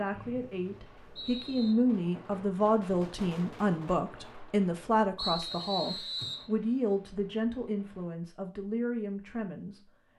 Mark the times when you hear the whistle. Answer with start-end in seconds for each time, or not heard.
0.1-1.8, 5.2-6.5.